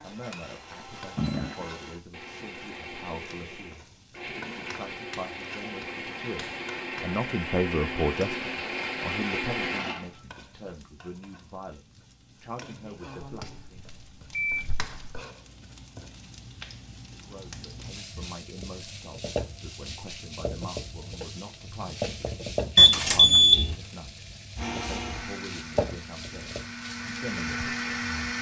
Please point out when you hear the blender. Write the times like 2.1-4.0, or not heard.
0.0-10.8, 24.6-28.3.